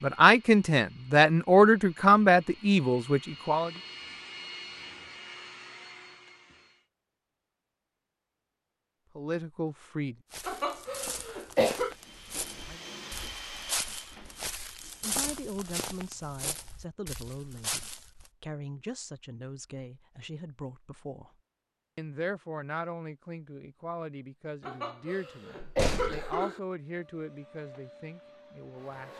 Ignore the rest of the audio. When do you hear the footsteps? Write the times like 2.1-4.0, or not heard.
10.3-18.3.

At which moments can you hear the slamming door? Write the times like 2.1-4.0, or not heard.
25.6-26.3.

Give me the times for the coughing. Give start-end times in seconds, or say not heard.
10.4-11.9, 24.6-26.6.